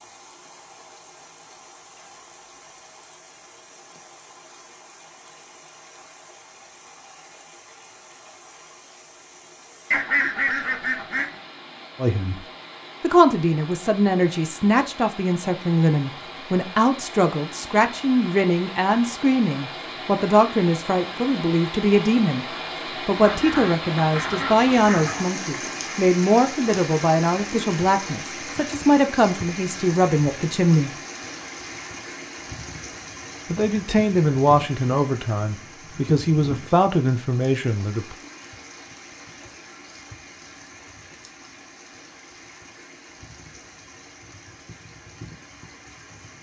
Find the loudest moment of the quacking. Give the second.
10 s.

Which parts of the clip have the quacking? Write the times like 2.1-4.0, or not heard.
9.9-11.3, 23.2-25.2.